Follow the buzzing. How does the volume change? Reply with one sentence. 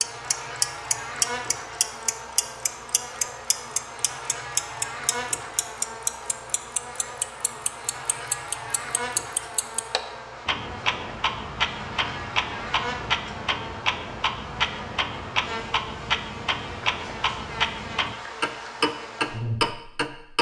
The loudness of the buzzing stays about the same.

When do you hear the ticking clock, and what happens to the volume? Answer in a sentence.
The ticking clock can be heard from 0.0 to 20.3 s, at a steady volume.